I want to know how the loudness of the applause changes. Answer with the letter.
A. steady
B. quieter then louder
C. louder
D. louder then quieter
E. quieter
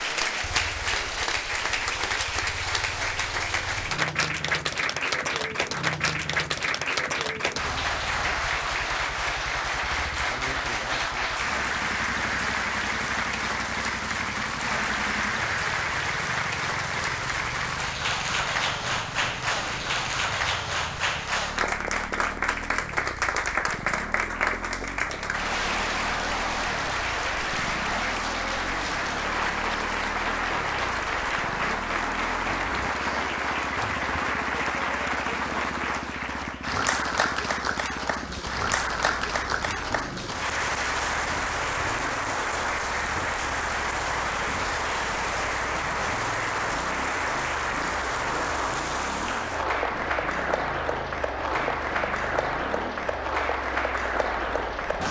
A.